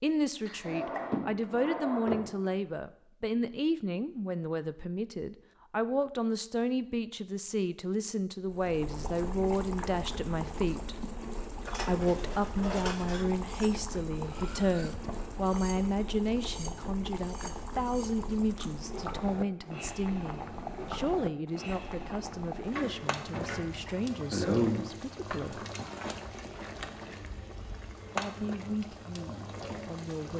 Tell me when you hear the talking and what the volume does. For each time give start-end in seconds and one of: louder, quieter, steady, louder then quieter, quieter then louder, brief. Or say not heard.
0.0-10.9 steady
11.8-25.6 quieter
28.1-30.3 brief.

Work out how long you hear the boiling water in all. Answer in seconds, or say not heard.
22 s.